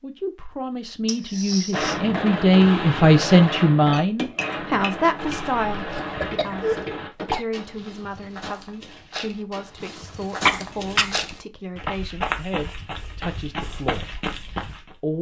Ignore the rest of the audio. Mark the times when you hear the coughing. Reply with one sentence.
The coughing can be heard from 1.1 to 2.0 s, from 6.0 to 7.5 s and from 10.4 to 11.2 s.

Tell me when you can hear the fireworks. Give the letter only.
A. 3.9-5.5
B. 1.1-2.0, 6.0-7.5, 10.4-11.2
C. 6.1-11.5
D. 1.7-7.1
D.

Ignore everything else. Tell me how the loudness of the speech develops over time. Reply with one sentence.
The loudness of the speech goes down.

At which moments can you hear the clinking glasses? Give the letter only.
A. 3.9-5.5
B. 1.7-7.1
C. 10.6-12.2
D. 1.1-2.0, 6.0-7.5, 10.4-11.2
A.